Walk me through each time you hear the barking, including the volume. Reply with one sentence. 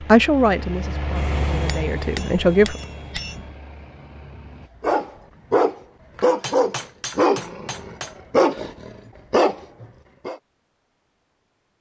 You can hear the barking from 4.8 to 10.3 s, at a steady volume.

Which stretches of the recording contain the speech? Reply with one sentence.
The speech can be heard from 0.1 to 2.8 s.